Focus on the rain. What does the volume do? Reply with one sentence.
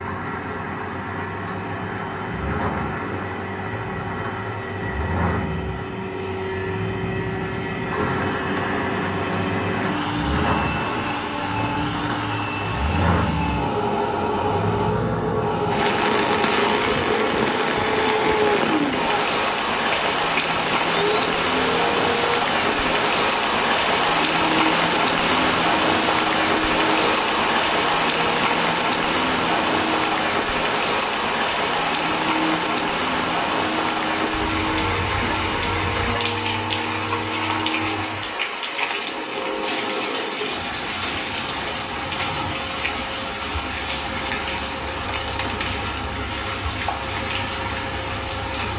The volume of the rain goes up, then down.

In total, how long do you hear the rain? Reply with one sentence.
The rain can be heard for 49 seconds in total.